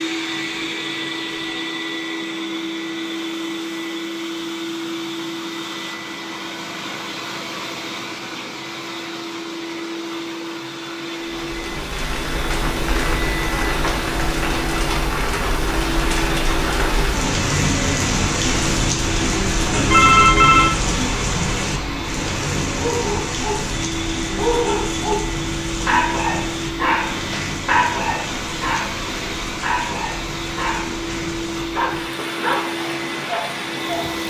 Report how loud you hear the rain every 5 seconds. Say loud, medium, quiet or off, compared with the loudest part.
off, off, loud, loud, loud, medium, medium.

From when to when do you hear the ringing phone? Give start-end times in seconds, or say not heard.
19.7-20.8.